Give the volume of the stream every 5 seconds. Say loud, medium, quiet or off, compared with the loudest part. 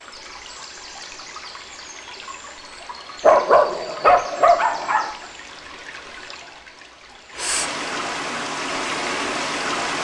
medium, loud.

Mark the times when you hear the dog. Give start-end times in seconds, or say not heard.
3.2-5.1.